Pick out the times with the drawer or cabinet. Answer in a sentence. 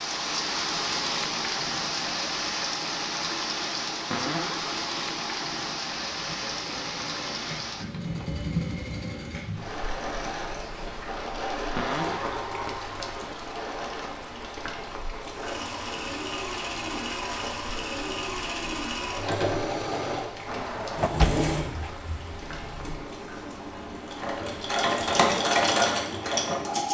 The drawer or cabinet can be heard from 4.1 to 4.8 s, from 11.8 to 12.3 s and from 20.4 to 21.9 s.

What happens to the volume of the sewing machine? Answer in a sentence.
The loudness of the sewing machine goes up.